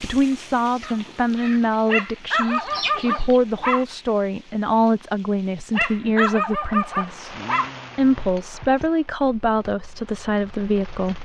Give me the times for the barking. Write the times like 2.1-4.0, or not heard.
1.9-3.9, 5.7-7.7.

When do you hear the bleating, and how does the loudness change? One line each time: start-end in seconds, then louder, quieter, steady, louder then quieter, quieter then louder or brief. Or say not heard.
not heard.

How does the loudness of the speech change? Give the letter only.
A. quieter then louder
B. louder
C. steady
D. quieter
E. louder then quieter
C.